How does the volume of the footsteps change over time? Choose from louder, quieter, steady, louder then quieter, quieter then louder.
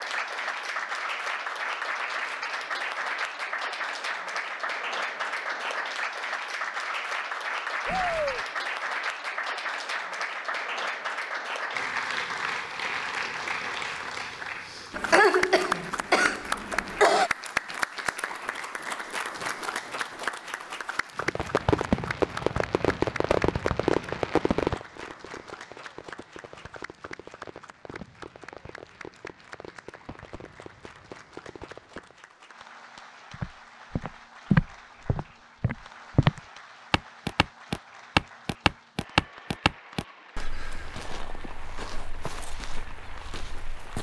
quieter.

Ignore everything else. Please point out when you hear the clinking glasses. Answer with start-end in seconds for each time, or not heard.
not heard.